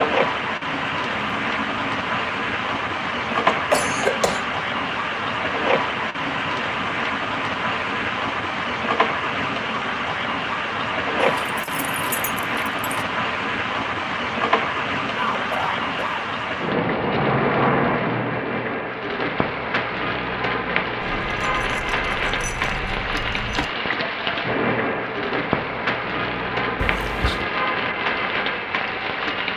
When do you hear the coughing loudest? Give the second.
4 s.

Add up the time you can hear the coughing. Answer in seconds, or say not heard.
3 s.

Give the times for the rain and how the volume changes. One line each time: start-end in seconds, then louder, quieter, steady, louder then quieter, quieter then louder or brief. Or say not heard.
0.0-29.5 steady.